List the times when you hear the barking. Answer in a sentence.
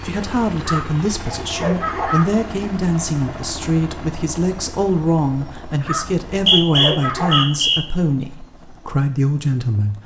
The barking can be heard from 0.6 to 2.4 s and from 5.8 to 7.5 s.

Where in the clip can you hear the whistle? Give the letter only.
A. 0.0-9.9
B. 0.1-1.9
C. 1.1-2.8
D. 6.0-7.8
D.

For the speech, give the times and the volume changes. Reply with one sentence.
The speech can be heard from 0.0 to 9.9 s, at a steady volume.